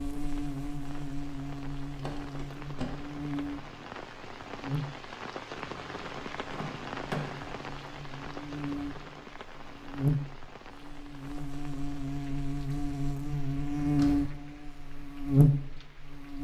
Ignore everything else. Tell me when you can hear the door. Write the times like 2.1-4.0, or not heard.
1.9-3.1, 6.5-7.5, 13.8-14.3.